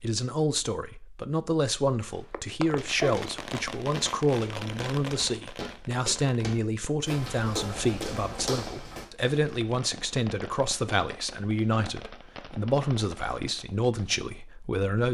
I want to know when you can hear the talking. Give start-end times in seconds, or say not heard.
0.0-15.0.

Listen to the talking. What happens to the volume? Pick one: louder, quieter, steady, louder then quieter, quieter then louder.
steady.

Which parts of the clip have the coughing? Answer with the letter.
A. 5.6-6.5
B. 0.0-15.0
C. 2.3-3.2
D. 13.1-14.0
C.